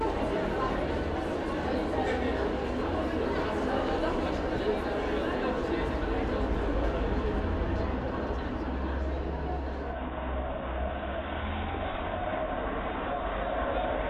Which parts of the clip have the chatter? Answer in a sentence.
The chatter can be heard from 0.0 to 14.0 s.